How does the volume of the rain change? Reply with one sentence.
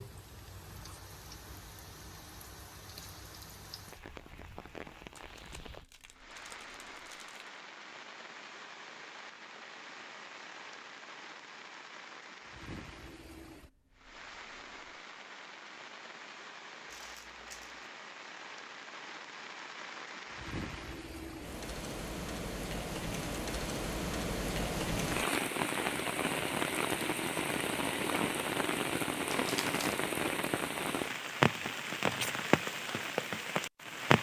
The volume of the rain goes up.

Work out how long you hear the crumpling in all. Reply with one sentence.
The crumpling can be heard for 4 seconds in total.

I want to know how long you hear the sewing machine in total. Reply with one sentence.
You can't hear the sewing machine here.